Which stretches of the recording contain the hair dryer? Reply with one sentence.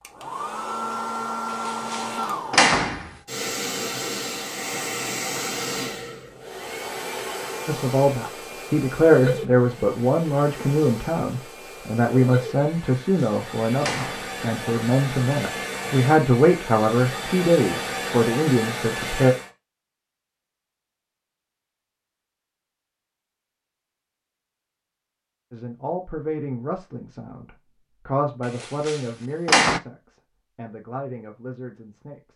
You can hear the hair dryer from 0.0 to 19.5 s.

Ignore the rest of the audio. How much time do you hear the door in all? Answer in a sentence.
You can hear the door for 4 seconds altogether.